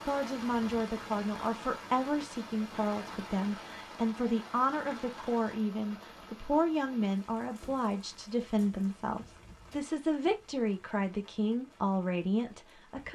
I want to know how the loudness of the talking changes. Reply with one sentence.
The loudness of the talking stays about the same.